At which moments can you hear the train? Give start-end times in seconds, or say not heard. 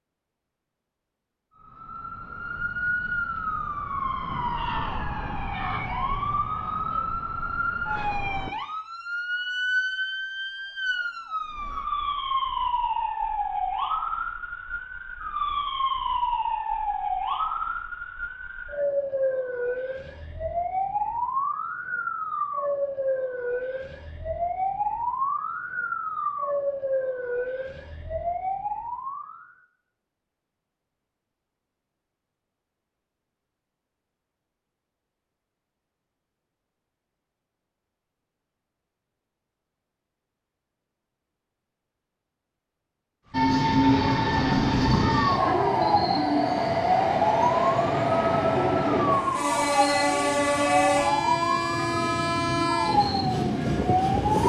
43.3-54.4.